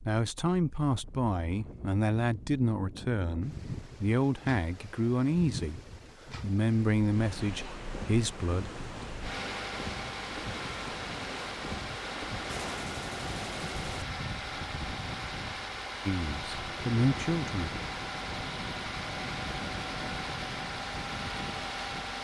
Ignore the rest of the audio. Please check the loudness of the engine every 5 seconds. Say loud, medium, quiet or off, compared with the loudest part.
off, medium, loud, loud, loud.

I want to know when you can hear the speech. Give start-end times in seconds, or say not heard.
0.0-8.7, 16.1-17.7.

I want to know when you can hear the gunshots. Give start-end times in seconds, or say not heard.
12.4-14.1.